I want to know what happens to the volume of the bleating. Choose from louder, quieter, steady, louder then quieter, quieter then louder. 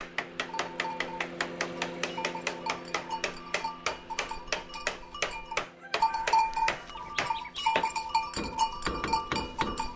louder.